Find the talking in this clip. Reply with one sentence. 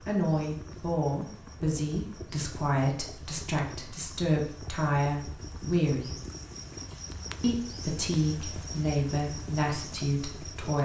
The talking can be heard from 0.1 to 6.1 s and from 7.4 to 10.8 s.